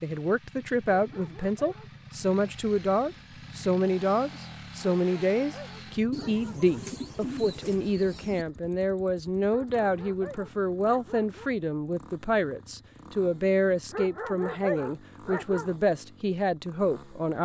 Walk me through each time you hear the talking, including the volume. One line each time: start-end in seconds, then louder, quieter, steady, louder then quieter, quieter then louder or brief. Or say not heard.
0.0-17.3 steady.